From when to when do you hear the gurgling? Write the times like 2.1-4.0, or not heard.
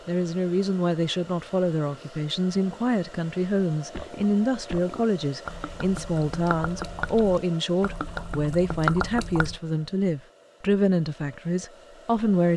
3.9-9.6.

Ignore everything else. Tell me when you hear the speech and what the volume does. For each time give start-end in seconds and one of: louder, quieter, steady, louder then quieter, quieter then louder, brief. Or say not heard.
0.1-12.5 steady.